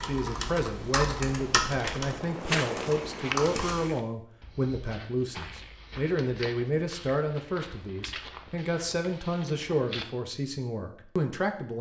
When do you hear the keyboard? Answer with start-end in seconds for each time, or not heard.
0.0-4.0.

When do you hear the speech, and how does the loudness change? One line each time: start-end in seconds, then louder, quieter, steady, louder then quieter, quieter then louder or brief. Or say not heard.
0.0-11.7 steady.